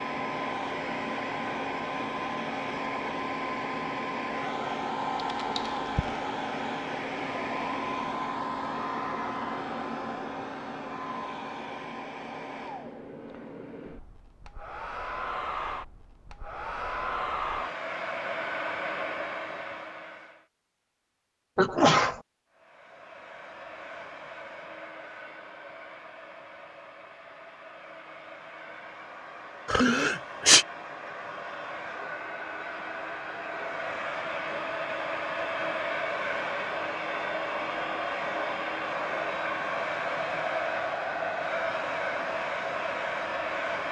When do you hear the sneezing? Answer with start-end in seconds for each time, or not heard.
5.4-6.2, 21.6-22.2, 29.7-30.6.